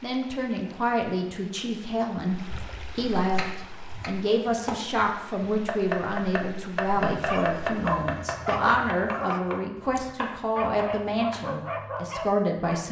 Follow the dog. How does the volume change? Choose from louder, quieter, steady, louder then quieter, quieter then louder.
quieter then louder.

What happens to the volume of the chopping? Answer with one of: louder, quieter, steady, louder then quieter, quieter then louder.
louder then quieter.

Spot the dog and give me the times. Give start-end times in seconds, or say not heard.
7.0-12.8.